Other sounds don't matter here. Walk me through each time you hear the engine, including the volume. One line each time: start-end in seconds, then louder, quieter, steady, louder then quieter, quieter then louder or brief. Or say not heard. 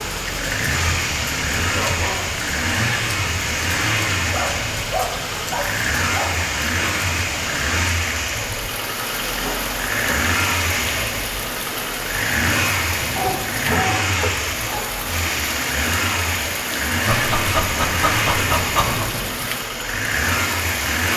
0.0-21.1 steady.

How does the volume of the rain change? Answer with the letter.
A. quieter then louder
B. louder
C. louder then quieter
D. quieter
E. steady
E.